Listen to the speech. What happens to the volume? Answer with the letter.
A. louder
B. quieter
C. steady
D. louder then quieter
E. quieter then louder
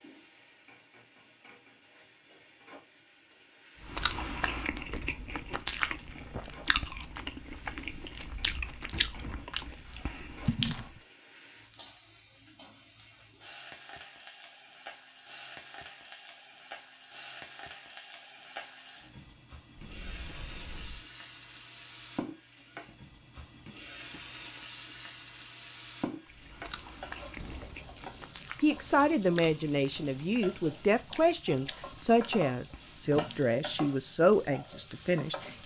C.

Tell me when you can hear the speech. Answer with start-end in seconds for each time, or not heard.
28.6-35.5.